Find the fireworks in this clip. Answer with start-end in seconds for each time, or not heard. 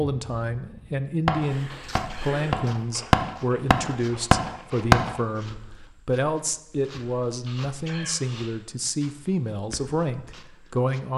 0.0-5.2.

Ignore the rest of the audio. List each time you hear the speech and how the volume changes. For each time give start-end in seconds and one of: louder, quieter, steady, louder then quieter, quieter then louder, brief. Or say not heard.
0.0-11.1 steady.